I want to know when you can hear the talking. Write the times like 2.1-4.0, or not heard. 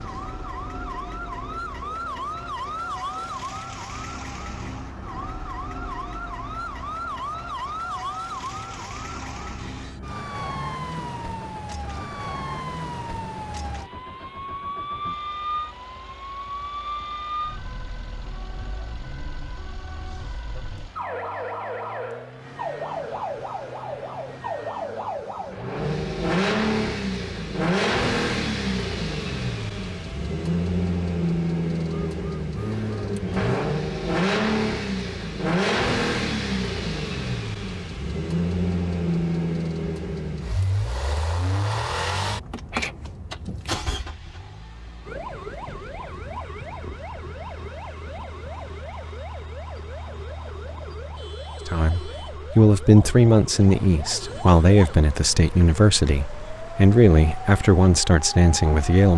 51.6-59.1.